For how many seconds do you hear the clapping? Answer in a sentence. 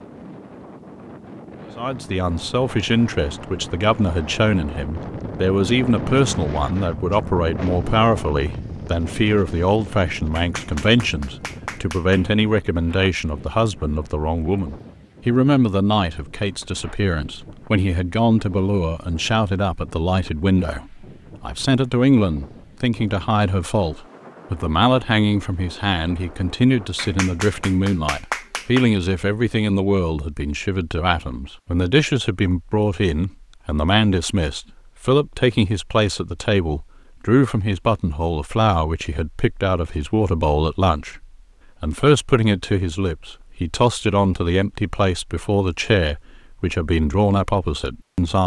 You can hear the clapping for 4 seconds altogether.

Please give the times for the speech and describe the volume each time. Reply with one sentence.
The speech can be heard from 1.8 to 48.4 s, at a steady volume.